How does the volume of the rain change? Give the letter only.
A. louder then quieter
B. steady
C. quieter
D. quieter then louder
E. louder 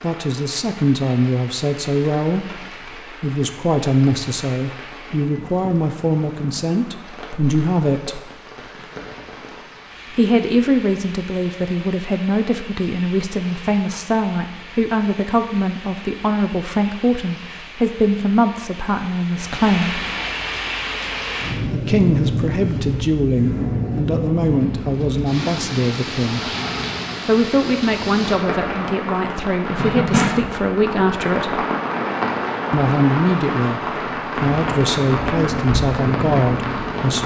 E.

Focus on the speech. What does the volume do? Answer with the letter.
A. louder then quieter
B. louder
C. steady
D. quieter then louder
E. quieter
C.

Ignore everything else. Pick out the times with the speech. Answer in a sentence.
The speech can be heard from 0.0 to 8.2 s, from 10.2 to 20.1 s, from 21.7 to 26.5 s, from 27.2 to 31.6 s and from 32.7 to 37.2 s.